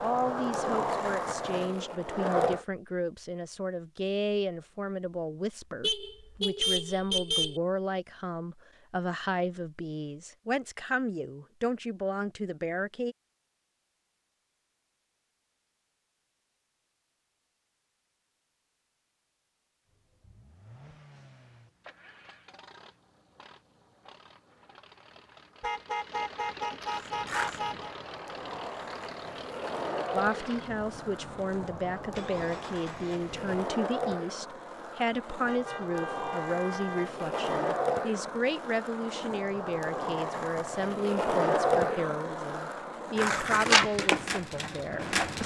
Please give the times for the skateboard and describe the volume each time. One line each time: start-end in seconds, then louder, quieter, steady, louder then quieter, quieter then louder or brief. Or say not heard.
0.0-2.6 brief
26.9-45.4 louder.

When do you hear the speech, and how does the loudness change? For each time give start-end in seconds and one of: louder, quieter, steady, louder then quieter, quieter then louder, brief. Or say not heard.
0.0-13.2 steady
30.1-45.4 steady.